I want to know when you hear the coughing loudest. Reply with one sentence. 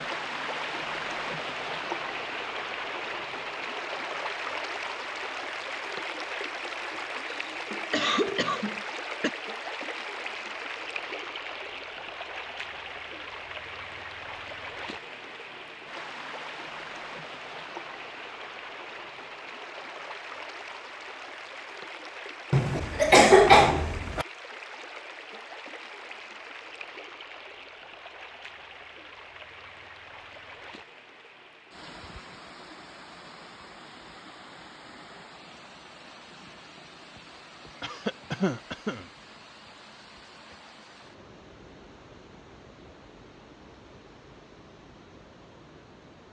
The loudest moment of the coughing is at 23 seconds.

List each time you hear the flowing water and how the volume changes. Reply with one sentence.
You can hear the flowing water from 0.0 to 46.2 s, getting quieter.